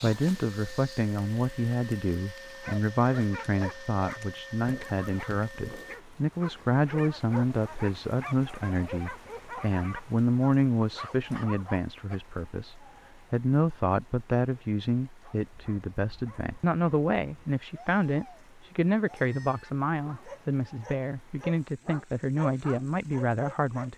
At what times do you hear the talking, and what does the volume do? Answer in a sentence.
The talking can be heard from 0.0 to 23.9 s, at a steady volume.